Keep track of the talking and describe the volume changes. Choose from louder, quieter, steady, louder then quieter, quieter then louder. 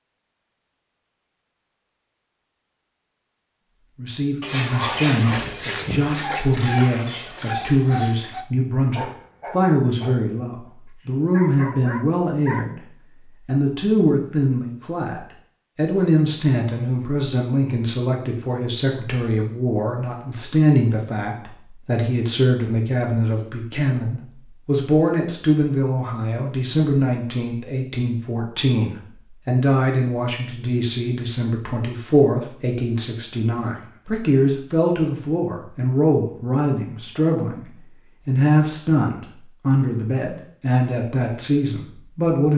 steady.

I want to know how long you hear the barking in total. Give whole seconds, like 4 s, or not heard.
8 s.